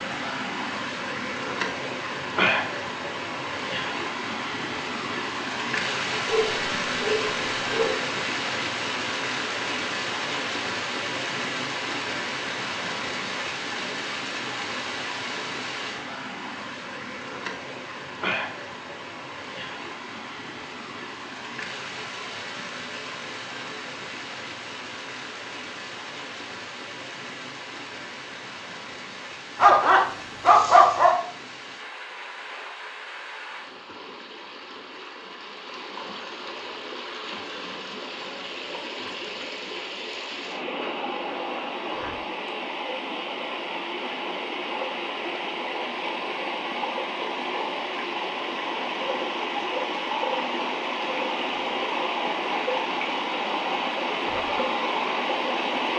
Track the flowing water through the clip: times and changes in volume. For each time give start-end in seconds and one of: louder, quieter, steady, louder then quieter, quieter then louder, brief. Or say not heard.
0.0-55.9 quieter then louder.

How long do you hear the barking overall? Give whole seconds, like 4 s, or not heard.
3 s.